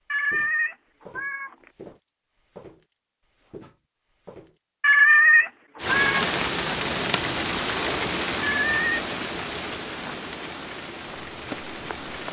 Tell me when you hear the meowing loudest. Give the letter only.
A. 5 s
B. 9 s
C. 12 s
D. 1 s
A.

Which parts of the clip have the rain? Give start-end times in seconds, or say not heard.
5.8-12.2.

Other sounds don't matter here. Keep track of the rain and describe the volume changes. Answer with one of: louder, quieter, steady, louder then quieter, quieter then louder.
quieter.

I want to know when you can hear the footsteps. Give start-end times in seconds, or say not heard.
0.1-4.6, 11.3-12.2.